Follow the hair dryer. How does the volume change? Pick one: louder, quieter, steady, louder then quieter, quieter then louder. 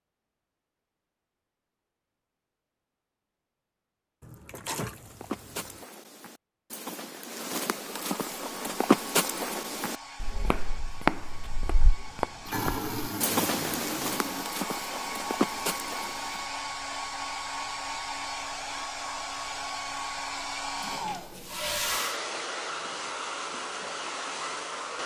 louder.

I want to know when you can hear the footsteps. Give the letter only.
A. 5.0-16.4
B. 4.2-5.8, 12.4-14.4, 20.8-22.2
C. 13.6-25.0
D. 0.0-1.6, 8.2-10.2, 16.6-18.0
A.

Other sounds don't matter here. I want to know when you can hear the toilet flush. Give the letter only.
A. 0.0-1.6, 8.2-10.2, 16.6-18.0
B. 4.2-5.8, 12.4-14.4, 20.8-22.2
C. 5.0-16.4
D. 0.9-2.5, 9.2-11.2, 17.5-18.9
B.